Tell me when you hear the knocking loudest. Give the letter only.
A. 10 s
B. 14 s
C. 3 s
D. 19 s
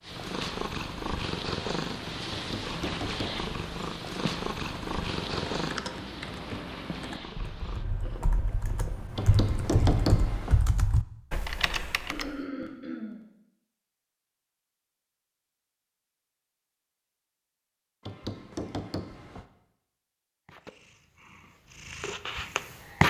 A.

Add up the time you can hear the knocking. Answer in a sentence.
The knocking can be heard for 4 seconds in total.